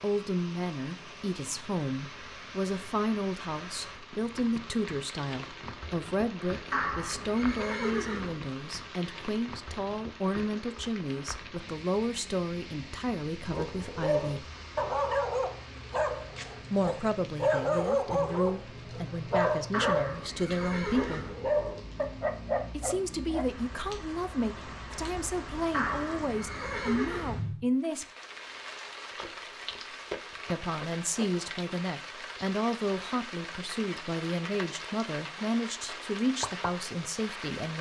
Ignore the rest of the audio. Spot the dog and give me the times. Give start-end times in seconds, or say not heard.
13.3-23.4.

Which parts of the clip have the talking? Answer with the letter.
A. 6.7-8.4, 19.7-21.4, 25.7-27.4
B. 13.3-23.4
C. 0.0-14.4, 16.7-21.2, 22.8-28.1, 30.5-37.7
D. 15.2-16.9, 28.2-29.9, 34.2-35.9
C.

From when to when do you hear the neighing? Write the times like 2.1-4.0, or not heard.
6.7-8.4, 19.7-21.4, 25.7-27.4.